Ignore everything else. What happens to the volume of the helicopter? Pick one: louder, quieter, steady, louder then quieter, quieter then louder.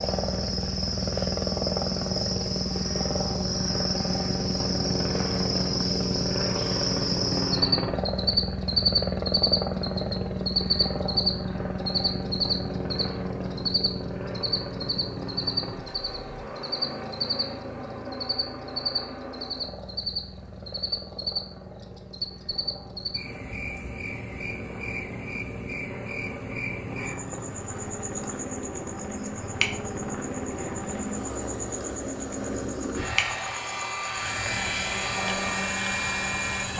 quieter then louder.